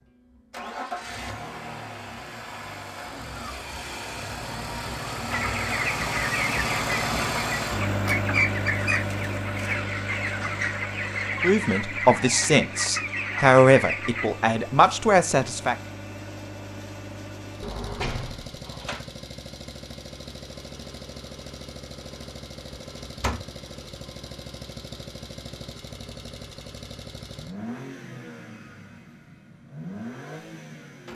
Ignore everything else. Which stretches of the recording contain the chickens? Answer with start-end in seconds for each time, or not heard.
5.3-14.3.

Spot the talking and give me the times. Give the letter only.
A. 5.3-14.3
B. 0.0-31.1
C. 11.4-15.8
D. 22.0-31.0
C.